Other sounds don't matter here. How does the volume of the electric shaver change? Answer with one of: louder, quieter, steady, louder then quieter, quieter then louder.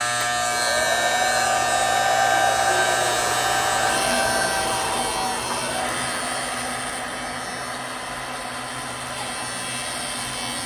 quieter.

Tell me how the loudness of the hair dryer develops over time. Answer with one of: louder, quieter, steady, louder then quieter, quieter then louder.
quieter.